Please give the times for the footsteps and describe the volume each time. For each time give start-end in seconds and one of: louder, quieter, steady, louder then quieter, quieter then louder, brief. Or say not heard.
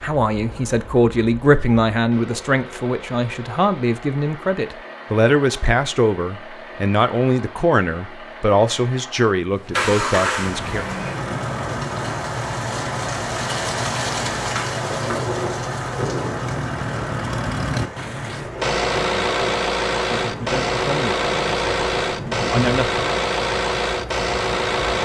not heard.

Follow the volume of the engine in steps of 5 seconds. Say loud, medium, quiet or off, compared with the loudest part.
quiet, medium, medium, loud, loud.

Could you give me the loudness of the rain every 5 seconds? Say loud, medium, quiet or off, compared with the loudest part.
off, off, loud, loud, medium.